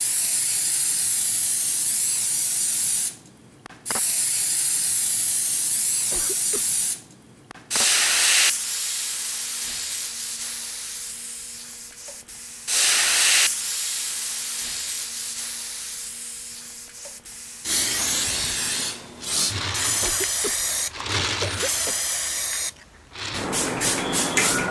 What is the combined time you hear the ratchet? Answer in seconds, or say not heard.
not heard.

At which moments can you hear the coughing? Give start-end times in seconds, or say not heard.
6.1-6.7, 20.0-22.0.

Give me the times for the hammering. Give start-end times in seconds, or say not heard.
not heard.